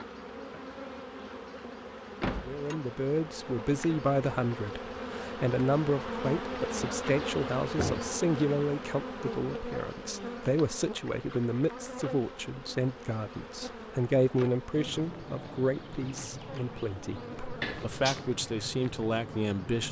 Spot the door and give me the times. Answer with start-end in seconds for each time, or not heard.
2.2-2.6, 7.7-8.2, 17.6-18.2.